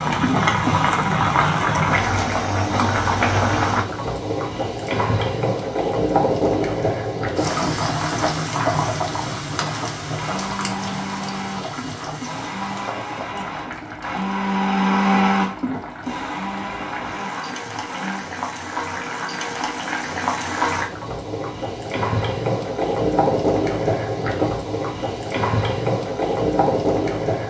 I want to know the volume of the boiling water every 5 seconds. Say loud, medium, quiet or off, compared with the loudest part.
loud, loud, medium, medium, loud, loud.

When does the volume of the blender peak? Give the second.
15 s.